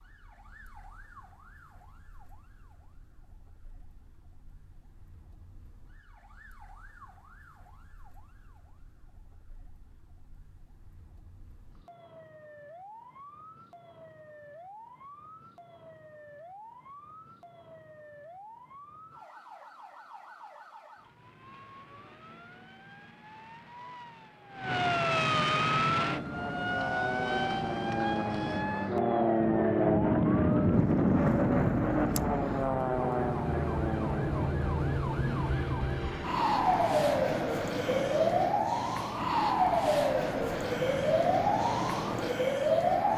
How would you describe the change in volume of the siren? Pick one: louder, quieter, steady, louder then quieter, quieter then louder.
louder.